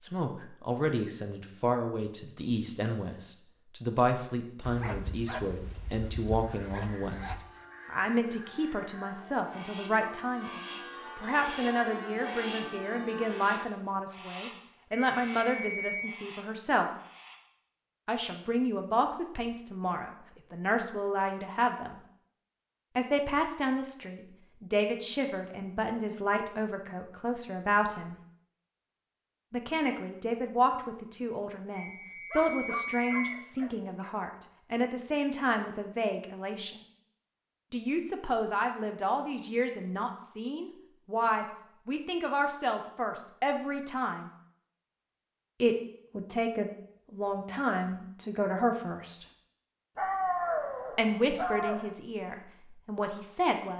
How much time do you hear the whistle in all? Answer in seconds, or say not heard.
3 s.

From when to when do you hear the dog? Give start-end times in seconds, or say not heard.
4.6-7.4, 32.3-34.3, 50.0-52.0.